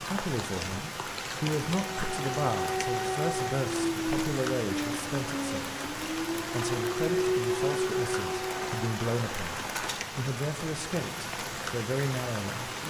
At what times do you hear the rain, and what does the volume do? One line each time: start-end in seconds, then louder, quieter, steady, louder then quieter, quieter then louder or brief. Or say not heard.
0.0-12.8 steady.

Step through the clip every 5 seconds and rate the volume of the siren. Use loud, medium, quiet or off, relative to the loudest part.
loud, loud, off.